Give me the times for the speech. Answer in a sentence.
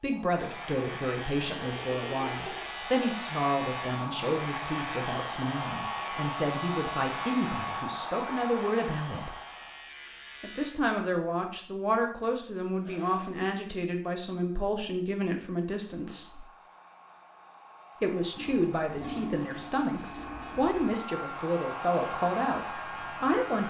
The speech can be heard from 0.0 to 9.3 s, from 10.4 to 16.4 s and from 18.0 to 23.6 s.